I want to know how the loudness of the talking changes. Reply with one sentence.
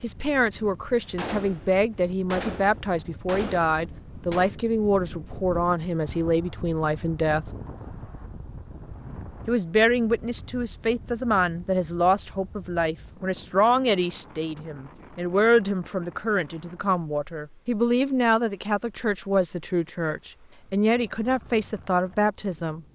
The loudness of the talking stays about the same.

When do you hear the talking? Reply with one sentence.
You can hear the talking from 0.0 to 7.5 s and from 9.4 to 22.8 s.